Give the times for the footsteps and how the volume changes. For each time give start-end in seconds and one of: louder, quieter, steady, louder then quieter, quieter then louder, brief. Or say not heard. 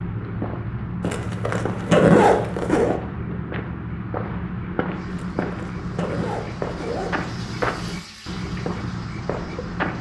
0.0-9.9 steady.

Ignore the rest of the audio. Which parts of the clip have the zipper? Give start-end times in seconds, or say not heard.
1.1-3.0, 5.1-7.2.